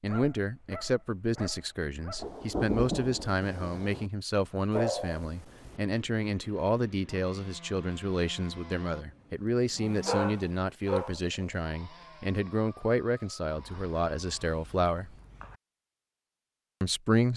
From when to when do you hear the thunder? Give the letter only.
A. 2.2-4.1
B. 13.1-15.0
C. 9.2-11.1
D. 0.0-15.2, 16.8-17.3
A.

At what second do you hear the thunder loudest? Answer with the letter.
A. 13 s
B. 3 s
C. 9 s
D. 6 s
B.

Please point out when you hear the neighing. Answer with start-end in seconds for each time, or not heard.
not heard.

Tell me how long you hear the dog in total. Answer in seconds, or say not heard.
7 s.